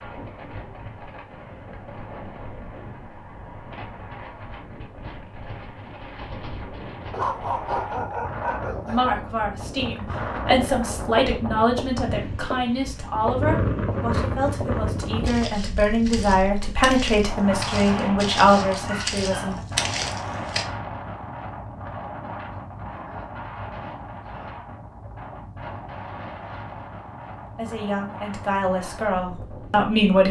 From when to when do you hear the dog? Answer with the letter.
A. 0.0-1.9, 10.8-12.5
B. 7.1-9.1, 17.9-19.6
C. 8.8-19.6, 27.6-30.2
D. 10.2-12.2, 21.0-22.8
B.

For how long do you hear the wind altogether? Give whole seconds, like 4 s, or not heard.
30 s.